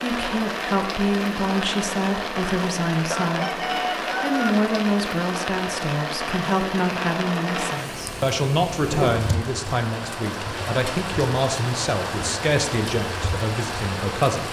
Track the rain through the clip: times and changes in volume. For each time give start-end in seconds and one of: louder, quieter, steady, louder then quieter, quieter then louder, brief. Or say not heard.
0.0-14.4 steady.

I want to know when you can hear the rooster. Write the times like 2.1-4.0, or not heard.
3.1-4.5.